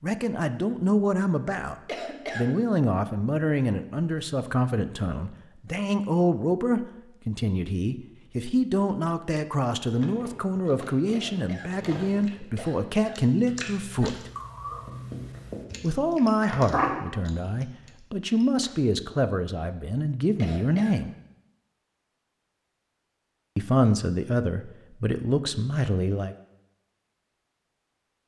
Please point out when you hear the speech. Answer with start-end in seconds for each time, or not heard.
0.0-1.8, 2.4-14.3, 15.8-21.1, 23.6-26.4.